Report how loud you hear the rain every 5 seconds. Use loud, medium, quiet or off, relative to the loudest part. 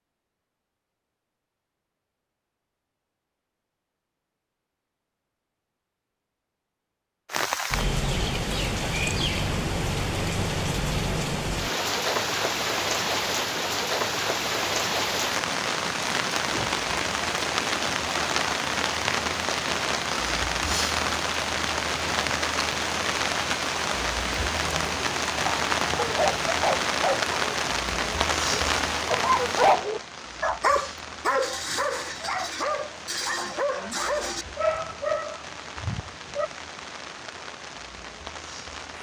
off, loud, loud, loud, loud, loud, quiet, quiet.